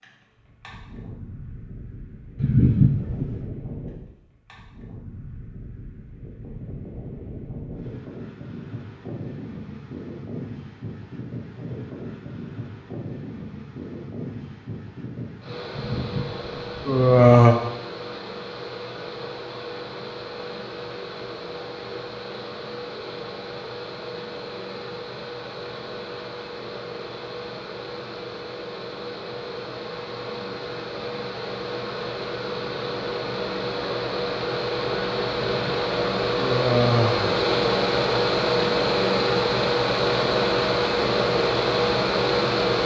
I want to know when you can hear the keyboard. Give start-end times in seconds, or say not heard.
not heard.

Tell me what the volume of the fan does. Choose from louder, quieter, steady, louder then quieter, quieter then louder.
louder.